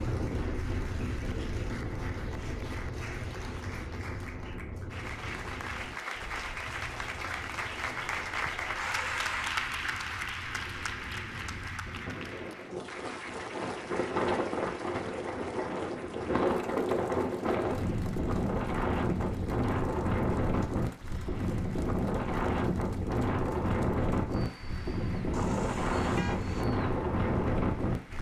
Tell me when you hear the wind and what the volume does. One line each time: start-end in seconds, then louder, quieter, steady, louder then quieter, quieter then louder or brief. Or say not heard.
0.0-28.1 quieter then louder.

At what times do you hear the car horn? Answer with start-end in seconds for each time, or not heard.
8.8-9.7, 25.3-26.6.